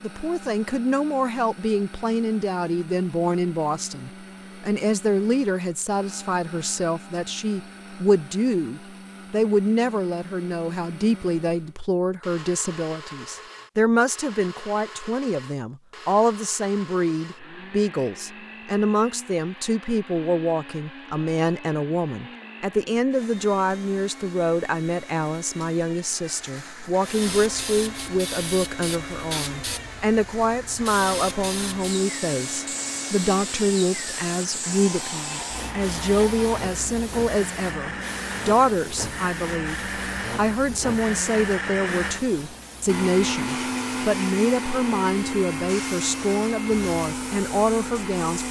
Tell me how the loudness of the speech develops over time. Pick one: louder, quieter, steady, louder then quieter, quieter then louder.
steady.